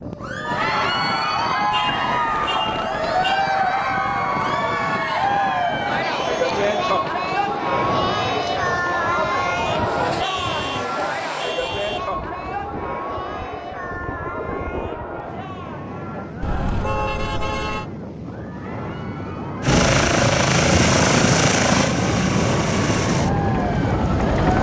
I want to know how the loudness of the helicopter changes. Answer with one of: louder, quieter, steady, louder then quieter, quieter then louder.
quieter.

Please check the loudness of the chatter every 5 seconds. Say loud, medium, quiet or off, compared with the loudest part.
loud, loud, medium, quiet, medium.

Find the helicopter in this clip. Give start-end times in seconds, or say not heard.
19.6-24.5.